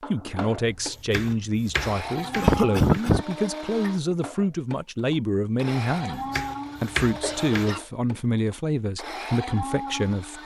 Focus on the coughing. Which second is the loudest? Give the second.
3 s.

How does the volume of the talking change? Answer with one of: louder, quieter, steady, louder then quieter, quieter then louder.
steady.